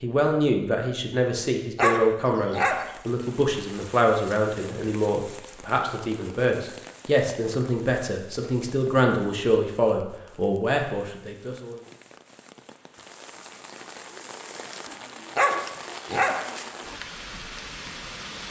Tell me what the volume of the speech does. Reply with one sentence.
The volume of the speech stays about the same.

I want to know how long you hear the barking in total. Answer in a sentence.
You can hear the barking for 2 seconds altogether.